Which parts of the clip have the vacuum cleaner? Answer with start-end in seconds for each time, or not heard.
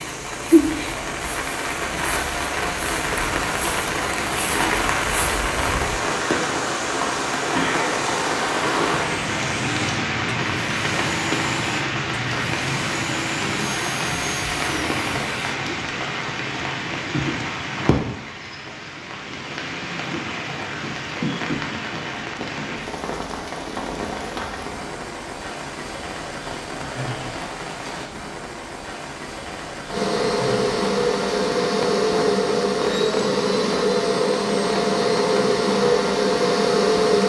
0.0-15.7, 29.9-37.2.